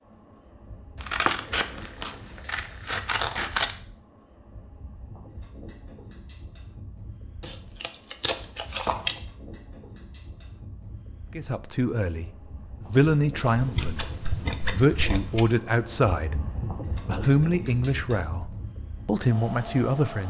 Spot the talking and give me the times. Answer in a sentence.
The talking can be heard from 11.3 to 12.3 s, from 12.9 to 14.1 s and from 14.7 to 20.2 s.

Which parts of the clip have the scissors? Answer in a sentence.
You can hear the scissors from 1.0 to 3.8 s, from 7.4 to 9.2 s and from 13.6 to 15.4 s.